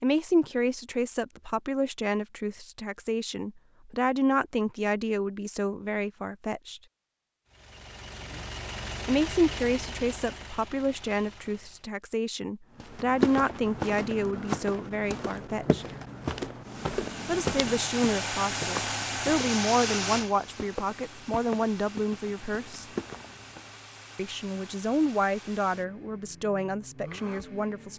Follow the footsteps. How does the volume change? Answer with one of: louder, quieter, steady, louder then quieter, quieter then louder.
quieter.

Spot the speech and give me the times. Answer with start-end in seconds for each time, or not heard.
0.0-6.8, 9.1-15.8, 17.2-22.9, 24.1-27.9.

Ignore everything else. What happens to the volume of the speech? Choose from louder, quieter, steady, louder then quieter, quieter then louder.
steady.